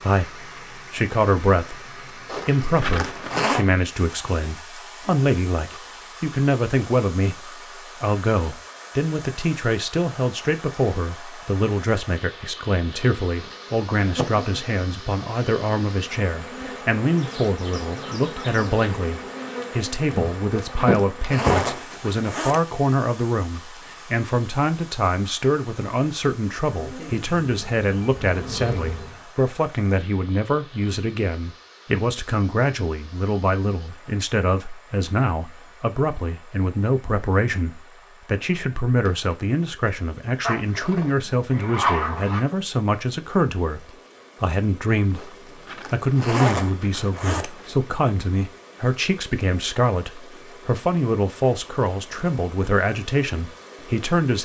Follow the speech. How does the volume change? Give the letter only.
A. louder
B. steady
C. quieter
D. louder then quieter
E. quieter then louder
B.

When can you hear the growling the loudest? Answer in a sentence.
The loudest moment of the growling is at 42 seconds.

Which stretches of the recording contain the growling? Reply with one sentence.
The growling can be heard from 40.4 to 42.4 s.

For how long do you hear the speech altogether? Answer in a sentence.
You can hear the speech for 54 seconds altogether.